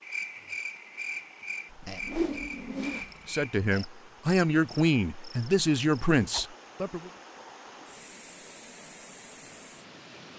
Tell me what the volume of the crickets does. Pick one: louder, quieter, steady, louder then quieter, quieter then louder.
quieter.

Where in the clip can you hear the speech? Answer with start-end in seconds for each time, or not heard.
3.2-7.1.